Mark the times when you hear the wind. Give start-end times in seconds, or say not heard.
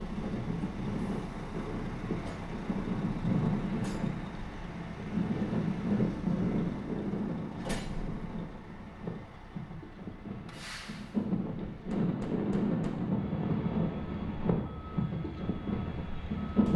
0.0-16.7.